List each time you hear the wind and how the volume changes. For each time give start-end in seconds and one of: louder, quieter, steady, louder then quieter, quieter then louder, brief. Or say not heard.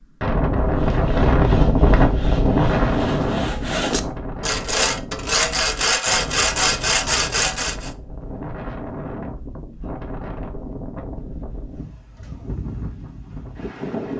0.2-14.1 quieter.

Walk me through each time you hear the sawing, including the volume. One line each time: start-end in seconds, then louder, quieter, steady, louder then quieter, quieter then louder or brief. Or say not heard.
0.7-7.9 louder.